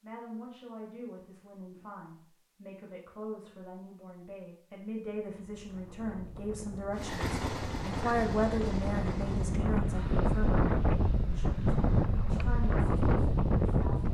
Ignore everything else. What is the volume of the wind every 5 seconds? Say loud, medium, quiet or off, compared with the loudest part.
off, medium, loud.